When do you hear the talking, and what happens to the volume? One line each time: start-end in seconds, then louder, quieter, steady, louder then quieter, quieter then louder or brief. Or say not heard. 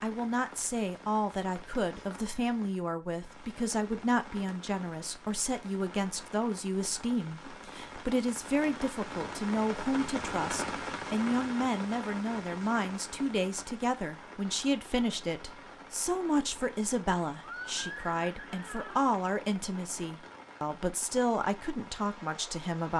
0.0-22.9 steady.